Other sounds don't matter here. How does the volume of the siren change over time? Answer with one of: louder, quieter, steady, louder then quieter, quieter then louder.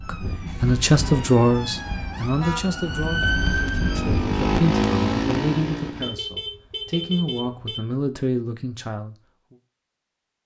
louder.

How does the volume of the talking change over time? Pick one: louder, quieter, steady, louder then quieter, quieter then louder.
quieter.